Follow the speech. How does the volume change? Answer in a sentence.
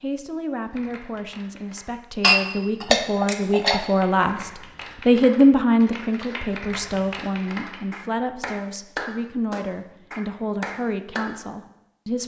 The volume of the speech goes up, then down.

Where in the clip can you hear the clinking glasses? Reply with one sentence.
You can hear the clinking glasses from 2.2 to 3.8 s.